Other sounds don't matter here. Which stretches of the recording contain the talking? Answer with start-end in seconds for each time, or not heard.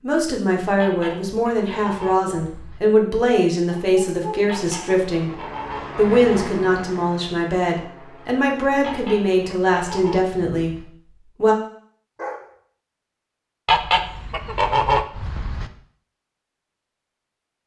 0.0-11.6.